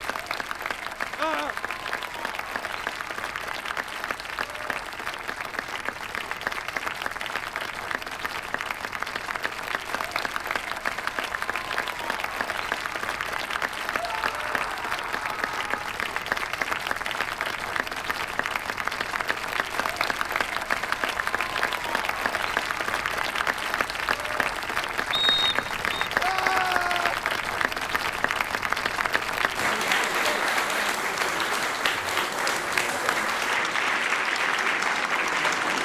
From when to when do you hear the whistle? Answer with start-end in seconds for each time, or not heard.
25.1-26.1.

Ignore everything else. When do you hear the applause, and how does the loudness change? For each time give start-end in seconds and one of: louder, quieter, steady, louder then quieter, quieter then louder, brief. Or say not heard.
0.0-35.8 louder.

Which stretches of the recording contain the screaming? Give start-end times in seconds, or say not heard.
1.1-1.6, 13.9-15.8, 26.1-27.1.